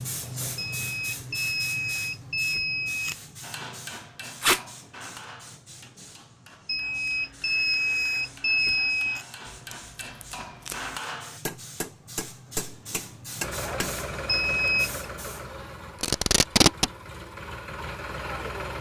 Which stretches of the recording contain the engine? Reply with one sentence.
You can hear the engine from 13.4 to 18.7 s.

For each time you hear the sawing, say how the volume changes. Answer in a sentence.
You can't hear the sawing here.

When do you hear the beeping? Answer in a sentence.
You can hear the beeping from 0.6 to 3.1 s, from 6.7 to 9.2 s and from 14.2 to 15.1 s.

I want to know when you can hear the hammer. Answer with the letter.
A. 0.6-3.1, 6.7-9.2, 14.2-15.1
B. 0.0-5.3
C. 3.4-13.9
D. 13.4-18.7
C.